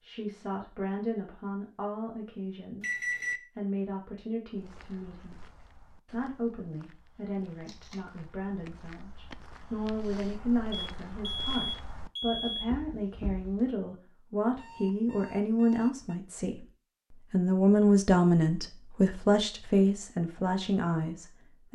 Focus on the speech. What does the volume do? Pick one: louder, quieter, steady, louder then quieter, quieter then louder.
louder.